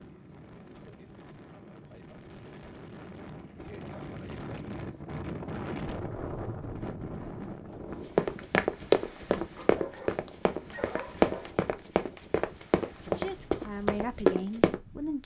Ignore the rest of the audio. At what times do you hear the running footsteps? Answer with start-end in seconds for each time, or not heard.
7.9-14.8.